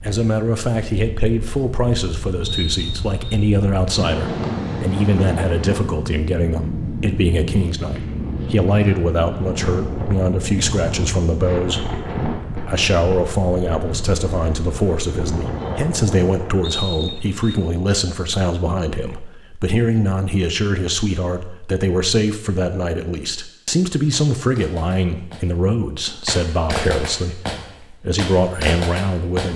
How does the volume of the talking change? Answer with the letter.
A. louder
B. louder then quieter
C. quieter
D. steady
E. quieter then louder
D.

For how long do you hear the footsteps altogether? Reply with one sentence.
You can't hear the footsteps here.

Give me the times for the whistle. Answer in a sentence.
The whistle can be heard from 2.4 to 3.4 s and from 16.6 to 17.6 s.